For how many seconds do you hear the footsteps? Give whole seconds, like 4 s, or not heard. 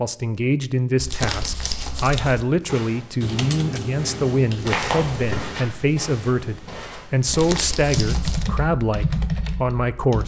5 s.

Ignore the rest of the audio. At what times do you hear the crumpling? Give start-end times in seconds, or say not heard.
0.9-2.5, 7.2-8.5.